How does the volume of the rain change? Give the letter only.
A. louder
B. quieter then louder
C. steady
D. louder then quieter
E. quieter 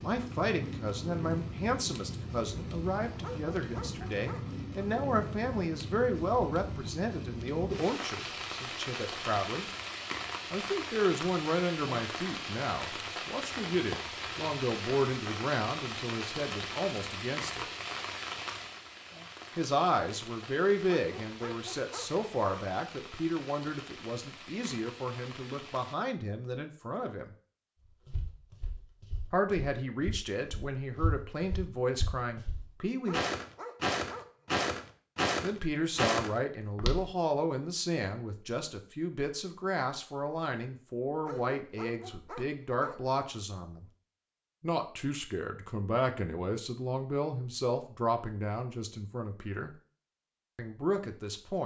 E.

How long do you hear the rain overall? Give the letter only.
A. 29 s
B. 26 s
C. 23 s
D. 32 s
B.